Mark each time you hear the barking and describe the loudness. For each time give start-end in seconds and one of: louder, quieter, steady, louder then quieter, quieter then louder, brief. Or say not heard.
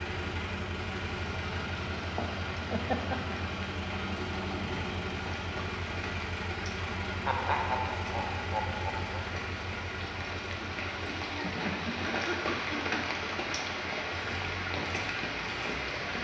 not heard.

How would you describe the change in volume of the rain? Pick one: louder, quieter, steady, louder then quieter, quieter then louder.
louder.